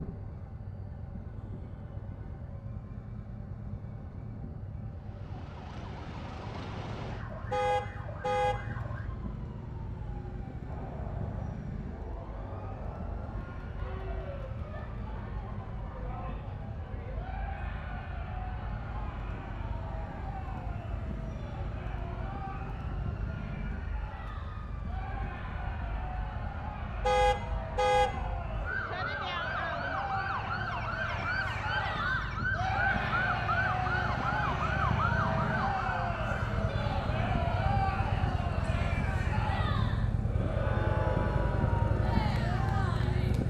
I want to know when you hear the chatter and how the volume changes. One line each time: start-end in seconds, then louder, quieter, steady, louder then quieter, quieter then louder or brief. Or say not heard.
10.7-43.4 louder.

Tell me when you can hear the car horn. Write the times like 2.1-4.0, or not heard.
7.5-8.6, 27.0-28.1.